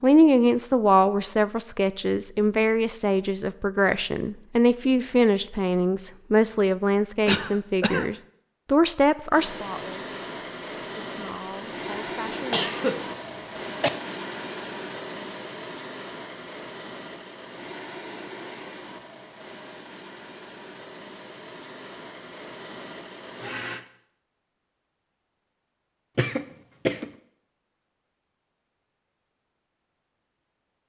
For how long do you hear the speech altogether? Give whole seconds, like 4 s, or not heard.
12 s.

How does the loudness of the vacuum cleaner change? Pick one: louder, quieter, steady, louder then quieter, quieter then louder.
quieter.